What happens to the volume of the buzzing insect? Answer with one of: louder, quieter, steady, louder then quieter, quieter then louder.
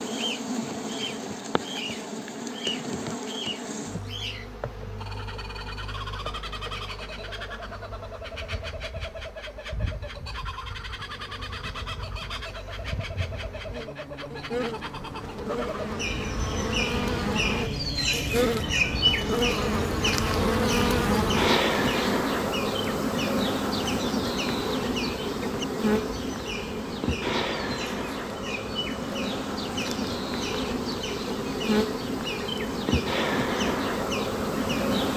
quieter then louder.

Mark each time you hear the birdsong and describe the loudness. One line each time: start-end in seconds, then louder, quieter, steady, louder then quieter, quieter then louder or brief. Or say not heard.
0.0-34.9 louder then quieter.